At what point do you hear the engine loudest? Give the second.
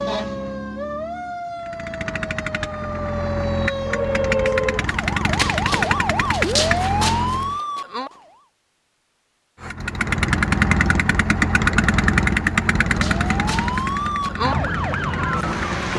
12 s.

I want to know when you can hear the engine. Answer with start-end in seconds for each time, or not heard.
1.6-7.6, 9.6-15.9.